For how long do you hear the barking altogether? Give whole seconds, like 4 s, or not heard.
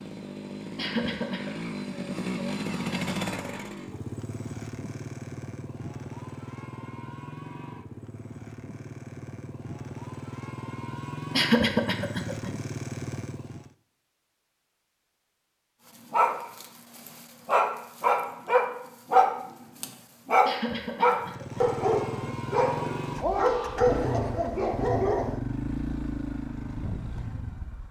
9 s.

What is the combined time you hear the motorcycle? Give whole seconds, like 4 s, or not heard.
20 s.